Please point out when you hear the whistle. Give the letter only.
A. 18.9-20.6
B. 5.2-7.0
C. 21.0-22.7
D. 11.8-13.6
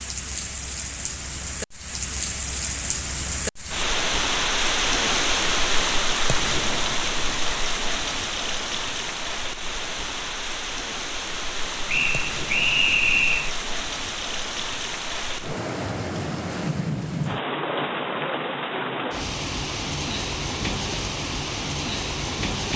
D.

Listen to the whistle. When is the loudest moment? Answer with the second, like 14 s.
13 s.